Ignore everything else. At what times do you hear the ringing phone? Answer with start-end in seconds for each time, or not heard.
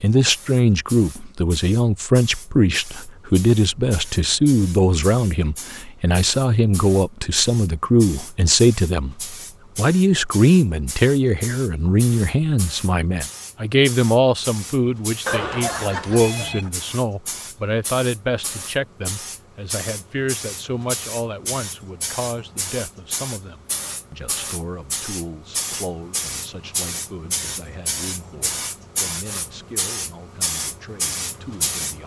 15.2-16.7.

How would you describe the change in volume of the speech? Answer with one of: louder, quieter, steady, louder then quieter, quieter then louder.
quieter.